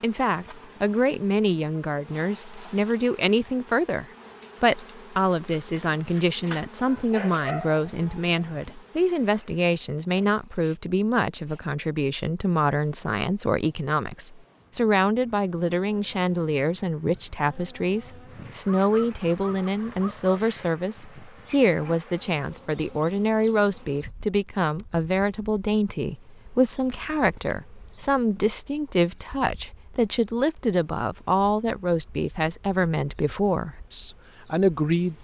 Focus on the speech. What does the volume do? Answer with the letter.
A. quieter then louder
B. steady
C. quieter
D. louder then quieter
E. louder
B.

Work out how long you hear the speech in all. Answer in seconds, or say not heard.
35 s.